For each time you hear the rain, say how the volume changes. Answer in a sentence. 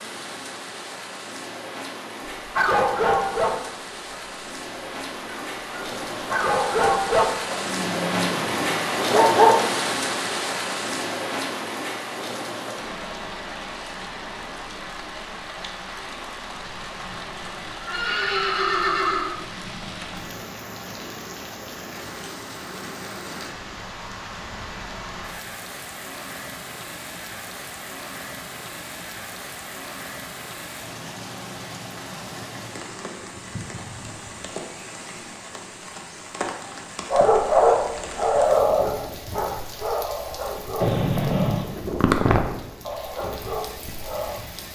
You can hear the rain from 0.0 to 44.6 s, getting quieter.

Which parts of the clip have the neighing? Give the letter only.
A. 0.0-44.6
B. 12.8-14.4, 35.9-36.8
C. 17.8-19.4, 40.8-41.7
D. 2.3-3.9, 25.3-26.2
C.